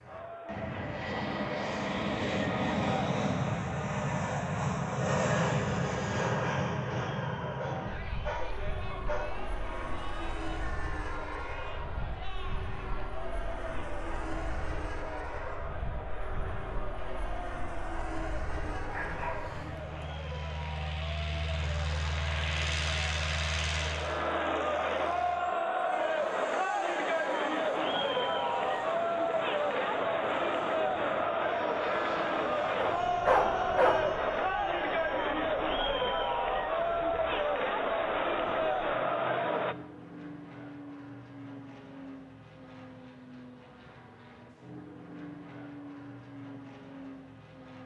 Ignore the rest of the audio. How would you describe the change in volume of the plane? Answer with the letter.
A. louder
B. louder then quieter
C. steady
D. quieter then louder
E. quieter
E.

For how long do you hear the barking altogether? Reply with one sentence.
You can hear the barking for 5 seconds altogether.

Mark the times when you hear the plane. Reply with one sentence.
The plane can be heard from 0.0 to 47.8 s.